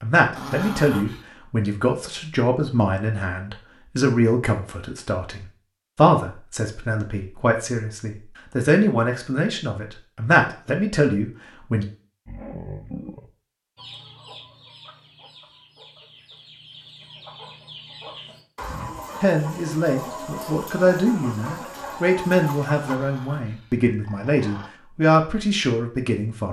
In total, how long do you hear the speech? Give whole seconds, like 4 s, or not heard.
19 s.